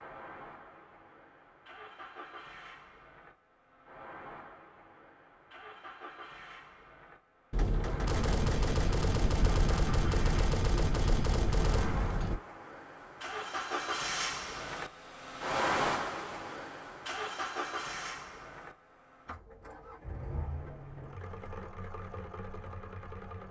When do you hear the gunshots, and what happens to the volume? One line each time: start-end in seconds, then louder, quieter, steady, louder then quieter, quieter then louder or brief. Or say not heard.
7.5-12.4 steady.